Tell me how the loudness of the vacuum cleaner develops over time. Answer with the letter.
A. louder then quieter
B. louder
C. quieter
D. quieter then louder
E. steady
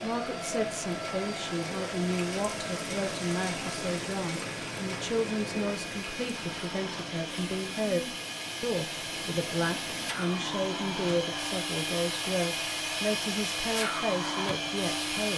B.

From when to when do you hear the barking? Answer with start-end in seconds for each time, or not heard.
not heard.